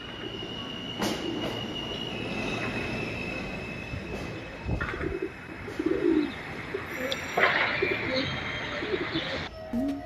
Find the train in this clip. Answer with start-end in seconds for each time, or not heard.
0.0-10.0.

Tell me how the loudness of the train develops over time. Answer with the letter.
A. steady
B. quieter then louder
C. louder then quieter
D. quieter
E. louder
D.